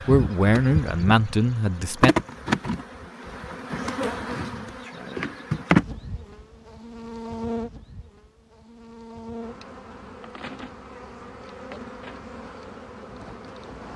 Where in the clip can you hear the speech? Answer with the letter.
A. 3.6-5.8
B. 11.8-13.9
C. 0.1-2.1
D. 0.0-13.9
C.